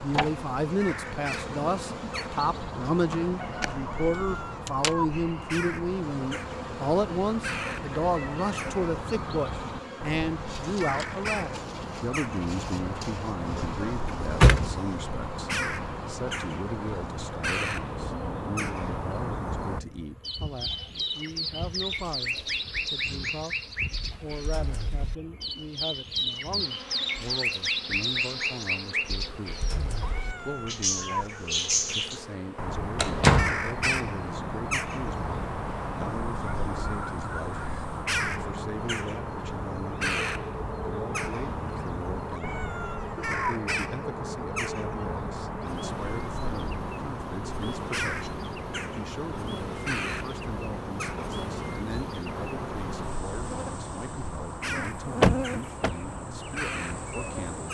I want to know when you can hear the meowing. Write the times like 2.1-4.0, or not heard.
3.9-5.0, 30.0-31.2, 42.3-43.3.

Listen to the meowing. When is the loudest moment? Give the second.
31 s.